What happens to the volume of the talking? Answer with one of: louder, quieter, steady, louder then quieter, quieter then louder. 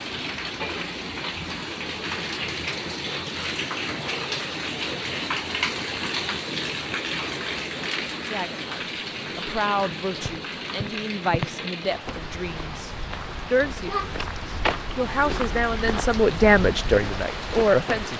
louder.